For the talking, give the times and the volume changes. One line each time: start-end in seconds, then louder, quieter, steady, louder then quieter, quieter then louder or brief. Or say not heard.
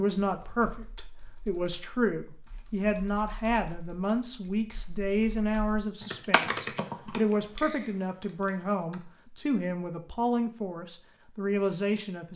0.0-12.3 steady.